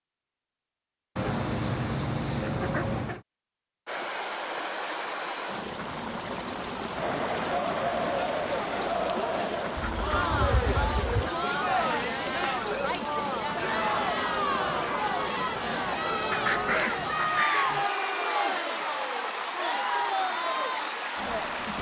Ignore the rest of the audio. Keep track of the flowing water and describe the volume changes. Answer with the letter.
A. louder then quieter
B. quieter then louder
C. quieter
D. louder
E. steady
E.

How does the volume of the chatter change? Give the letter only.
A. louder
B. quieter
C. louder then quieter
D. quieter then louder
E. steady
E.